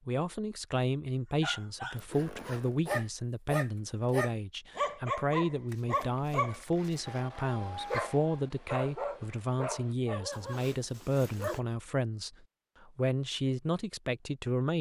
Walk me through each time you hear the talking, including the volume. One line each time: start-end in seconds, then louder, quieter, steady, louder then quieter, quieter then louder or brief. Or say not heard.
0.1-14.7 steady.